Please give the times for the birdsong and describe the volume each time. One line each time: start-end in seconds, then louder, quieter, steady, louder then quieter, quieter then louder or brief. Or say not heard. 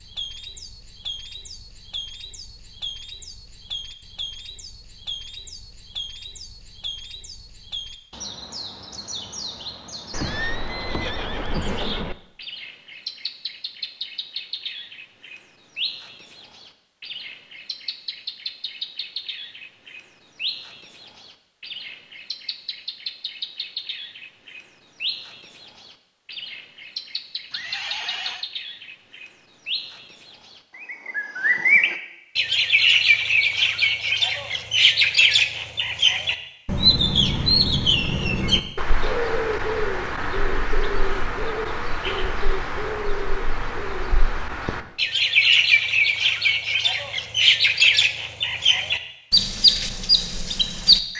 0.0-51.1 louder.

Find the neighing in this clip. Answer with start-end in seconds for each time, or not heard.
10.1-12.2, 27.5-28.4.